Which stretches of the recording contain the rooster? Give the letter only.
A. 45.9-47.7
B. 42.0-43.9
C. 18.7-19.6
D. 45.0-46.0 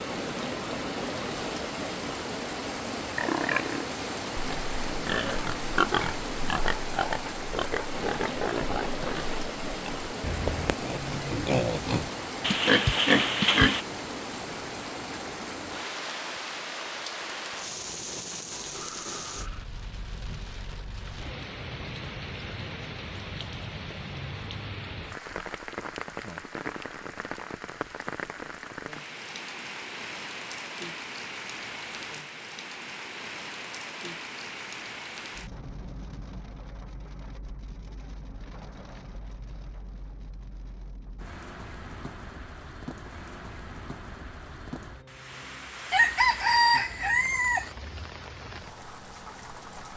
A.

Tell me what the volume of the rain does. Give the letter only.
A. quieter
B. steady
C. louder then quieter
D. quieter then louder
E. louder
A.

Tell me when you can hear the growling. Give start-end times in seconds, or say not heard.
18.7-19.6.